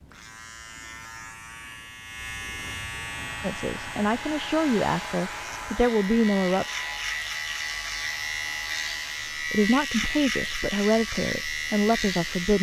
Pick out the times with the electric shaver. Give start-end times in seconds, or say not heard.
0.0-12.5.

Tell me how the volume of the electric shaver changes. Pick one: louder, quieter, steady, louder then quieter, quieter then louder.
louder.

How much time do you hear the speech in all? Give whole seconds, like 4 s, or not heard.
6 s.